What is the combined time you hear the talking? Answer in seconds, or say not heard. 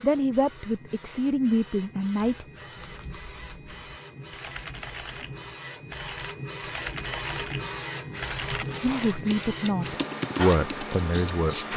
5 s.